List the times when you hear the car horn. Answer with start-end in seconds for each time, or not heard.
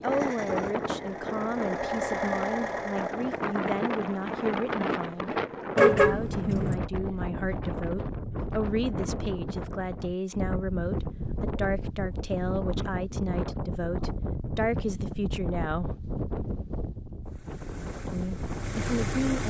5.8-6.8.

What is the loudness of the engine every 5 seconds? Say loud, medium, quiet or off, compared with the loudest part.
loud, off, off, loud.